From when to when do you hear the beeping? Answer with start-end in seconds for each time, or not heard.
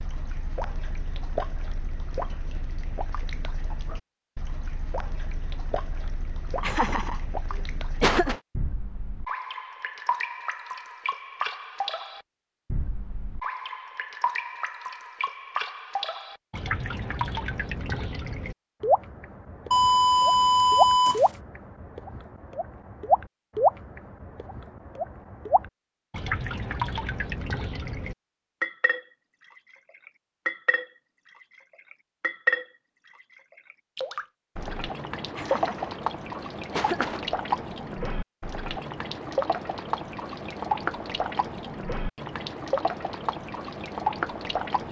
19.7-21.3.